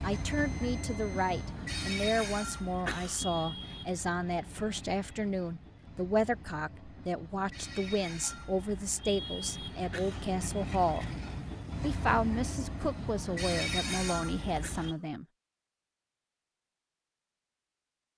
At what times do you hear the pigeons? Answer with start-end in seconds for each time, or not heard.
not heard.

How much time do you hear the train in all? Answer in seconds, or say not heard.
15 s.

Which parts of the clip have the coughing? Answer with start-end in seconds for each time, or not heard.
2.9-3.3, 9.9-10.3, 14.6-15.1.